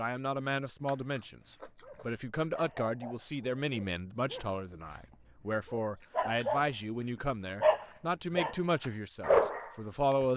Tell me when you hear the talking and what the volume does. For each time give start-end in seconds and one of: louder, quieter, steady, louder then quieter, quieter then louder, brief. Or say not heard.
0.0-10.3 steady.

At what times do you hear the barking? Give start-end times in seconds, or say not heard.
0.8-6.7, 7.6-10.2.